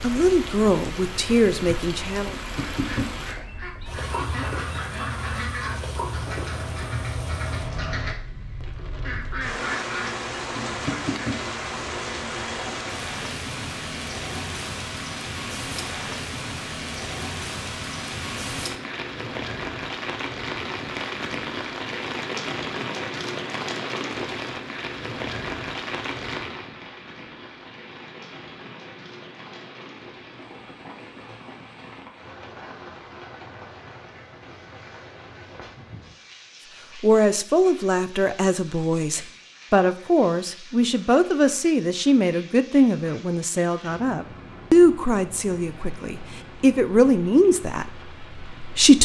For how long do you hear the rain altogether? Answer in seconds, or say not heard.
49 s.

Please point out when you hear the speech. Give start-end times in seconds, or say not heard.
0.0-2.4, 37.0-48.9.